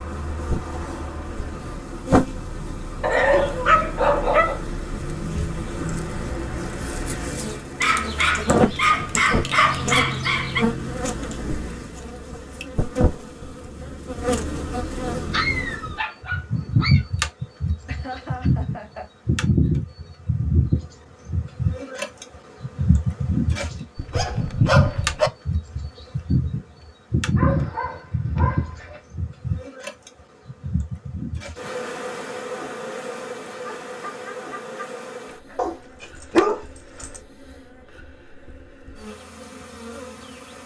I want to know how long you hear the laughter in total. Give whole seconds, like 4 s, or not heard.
4 s.